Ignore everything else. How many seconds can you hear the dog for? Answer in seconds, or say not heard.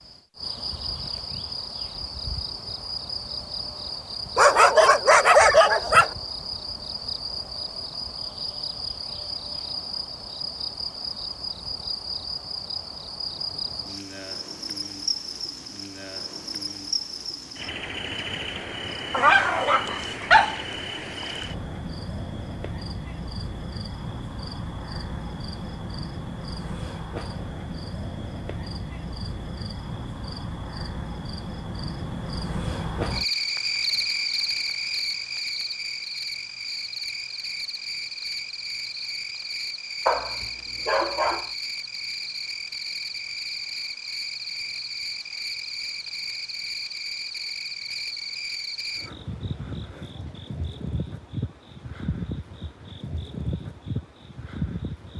5 s.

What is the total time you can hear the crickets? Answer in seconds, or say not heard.
55 s.